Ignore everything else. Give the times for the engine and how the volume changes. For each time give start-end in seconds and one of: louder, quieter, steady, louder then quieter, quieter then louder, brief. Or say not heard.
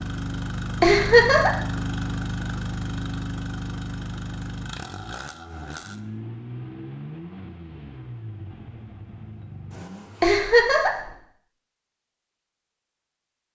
0.0-10.5 quieter.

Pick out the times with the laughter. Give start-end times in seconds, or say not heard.
0.8-1.5, 10.2-11.1.